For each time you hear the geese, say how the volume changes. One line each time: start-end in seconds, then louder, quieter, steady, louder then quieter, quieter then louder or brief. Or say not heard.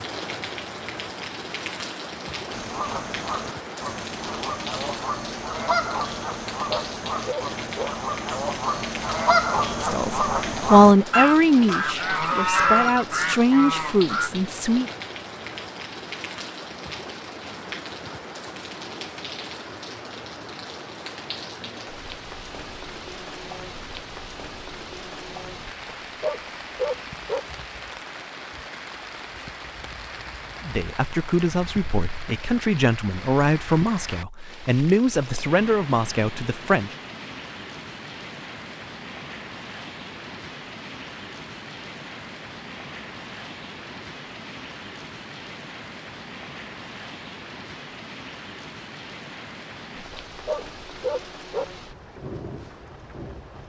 2.5-14.3 louder.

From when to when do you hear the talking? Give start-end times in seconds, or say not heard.
9.8-14.9, 30.6-37.0.